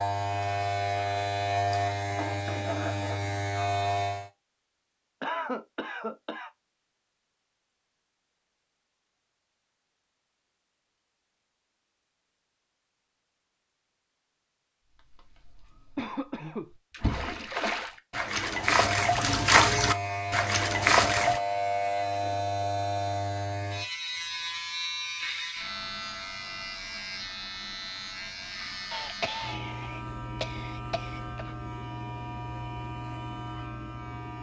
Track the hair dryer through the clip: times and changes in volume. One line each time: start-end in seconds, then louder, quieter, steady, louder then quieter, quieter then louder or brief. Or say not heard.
not heard.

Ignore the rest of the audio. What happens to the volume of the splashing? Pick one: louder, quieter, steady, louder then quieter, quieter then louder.
louder.